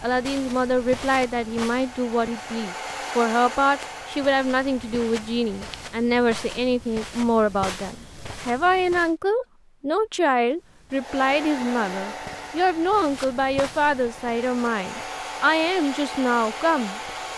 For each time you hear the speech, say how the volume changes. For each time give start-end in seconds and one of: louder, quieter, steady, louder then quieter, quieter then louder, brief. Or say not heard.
0.0-17.3 steady.